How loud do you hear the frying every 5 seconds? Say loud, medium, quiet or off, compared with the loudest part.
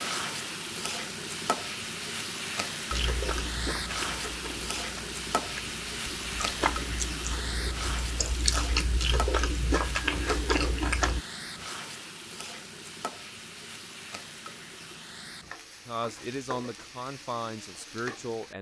loud, loud, medium, medium.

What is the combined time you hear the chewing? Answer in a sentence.
The chewing can be heard for 8 seconds in total.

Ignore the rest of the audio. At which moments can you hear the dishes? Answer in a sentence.
The dishes can't be heard in this clip.